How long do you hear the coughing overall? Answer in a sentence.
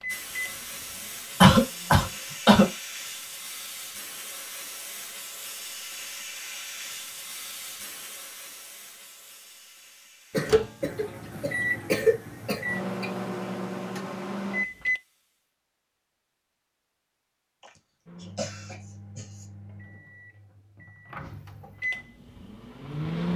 You can hear the coughing for 6 seconds altogether.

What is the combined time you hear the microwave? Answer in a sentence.
You can hear the microwave for 12 seconds altogether.